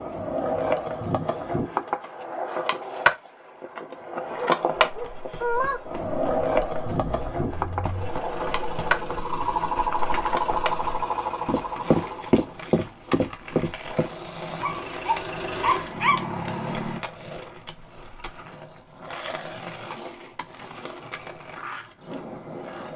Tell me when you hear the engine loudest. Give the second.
10 s.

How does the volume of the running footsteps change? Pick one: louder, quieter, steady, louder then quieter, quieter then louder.
louder.